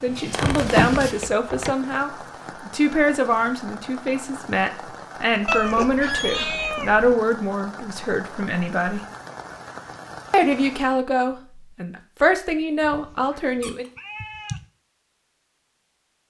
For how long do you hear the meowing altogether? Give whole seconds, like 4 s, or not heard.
5 s.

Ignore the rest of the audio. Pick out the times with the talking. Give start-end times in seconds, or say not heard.
0.0-9.0, 10.3-13.8.